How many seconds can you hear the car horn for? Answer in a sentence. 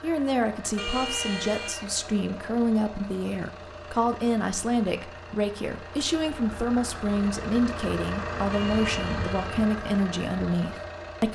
The car horn can be heard for 2 seconds in total.